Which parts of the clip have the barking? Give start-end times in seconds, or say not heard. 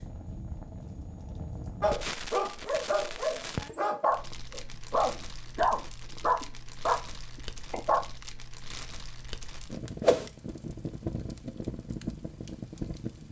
1.8-8.0.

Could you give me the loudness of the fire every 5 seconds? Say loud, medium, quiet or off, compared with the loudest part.
loud, medium, loud.